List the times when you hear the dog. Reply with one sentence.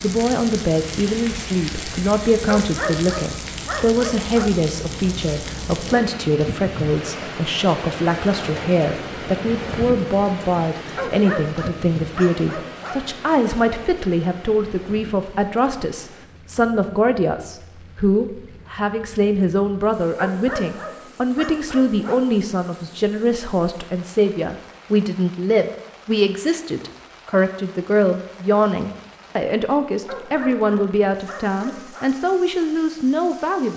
The dog can be heard from 2.5 to 4.5 s, from 10.9 to 13.0 s, from 20.1 to 22.2 s and from 30.1 to 32.1 s.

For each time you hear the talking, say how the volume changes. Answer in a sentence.
The talking can be heard from 0.0 to 33.7 s, at a steady volume.